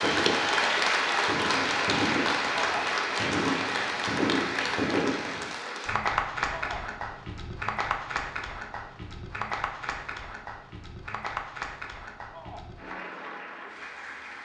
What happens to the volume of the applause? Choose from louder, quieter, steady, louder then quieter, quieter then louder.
quieter.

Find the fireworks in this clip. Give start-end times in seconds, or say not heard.
0.0-5.5.